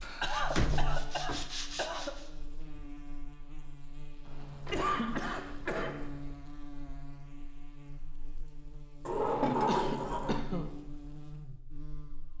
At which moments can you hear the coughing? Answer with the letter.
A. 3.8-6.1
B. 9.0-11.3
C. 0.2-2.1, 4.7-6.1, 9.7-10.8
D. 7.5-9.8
C.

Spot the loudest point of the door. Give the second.
10 s.